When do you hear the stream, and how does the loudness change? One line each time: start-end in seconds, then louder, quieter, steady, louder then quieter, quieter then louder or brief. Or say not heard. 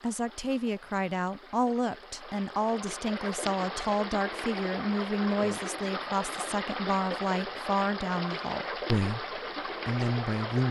0.0-10.6 louder.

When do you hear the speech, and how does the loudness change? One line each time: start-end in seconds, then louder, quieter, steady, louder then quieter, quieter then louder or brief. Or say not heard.
0.0-10.6 steady.